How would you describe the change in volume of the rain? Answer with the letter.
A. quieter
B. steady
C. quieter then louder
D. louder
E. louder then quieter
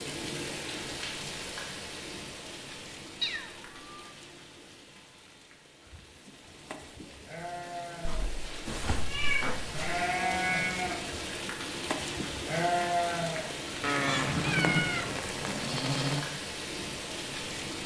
C.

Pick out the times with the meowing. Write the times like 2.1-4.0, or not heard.
3.2-4.1, 8.1-9.8, 13.8-15.2.